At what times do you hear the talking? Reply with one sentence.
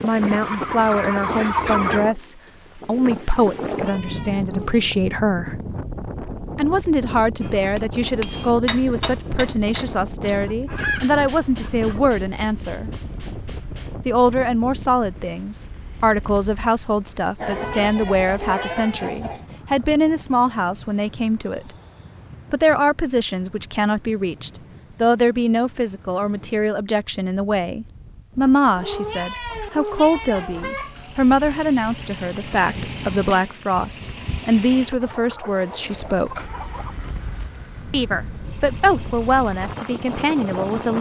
You can hear the talking from 0.0 to 5.6 s, from 6.5 to 12.9 s, from 14.1 to 21.8 s, from 22.5 to 36.5 s and from 37.9 to 40.9 s.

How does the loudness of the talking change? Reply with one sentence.
The volume of the talking stays about the same.